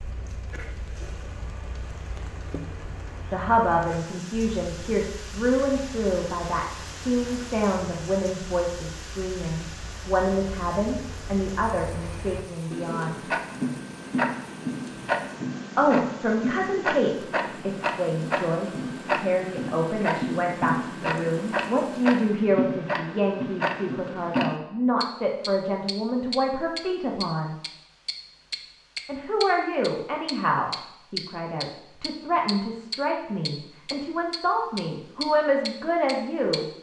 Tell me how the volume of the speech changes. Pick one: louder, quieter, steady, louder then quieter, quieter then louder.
steady.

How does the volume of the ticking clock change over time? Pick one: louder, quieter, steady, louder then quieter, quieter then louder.
louder.